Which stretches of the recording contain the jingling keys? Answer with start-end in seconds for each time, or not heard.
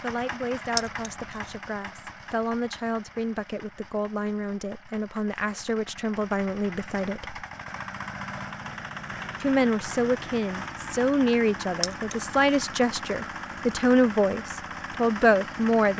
0.8-1.5, 11.8-12.6.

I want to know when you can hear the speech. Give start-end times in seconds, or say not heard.
0.0-7.5, 9.4-15.9.